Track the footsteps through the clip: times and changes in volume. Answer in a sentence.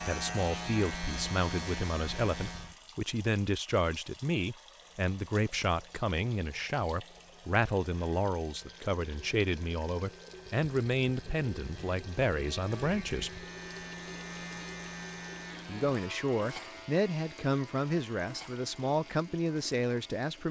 You can't hear the footsteps here.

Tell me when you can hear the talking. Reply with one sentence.
You can hear the talking from 0.0 to 13.3 s and from 15.7 to 20.4 s.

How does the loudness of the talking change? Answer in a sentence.
The loudness of the talking stays about the same.